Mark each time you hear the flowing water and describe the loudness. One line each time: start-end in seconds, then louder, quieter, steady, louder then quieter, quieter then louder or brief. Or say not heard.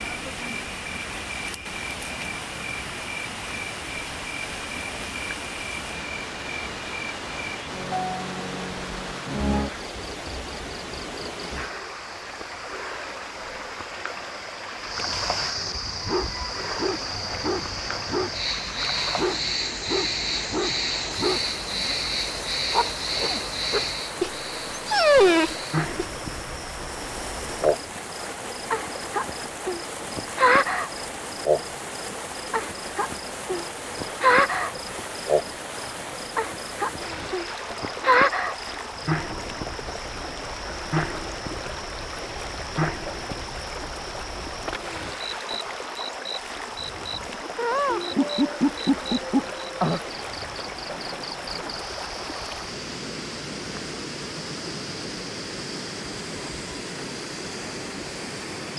0.0-58.7 steady.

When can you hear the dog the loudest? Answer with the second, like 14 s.
25 s.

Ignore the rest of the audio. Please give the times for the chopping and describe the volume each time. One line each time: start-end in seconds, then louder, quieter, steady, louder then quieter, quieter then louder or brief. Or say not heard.
not heard.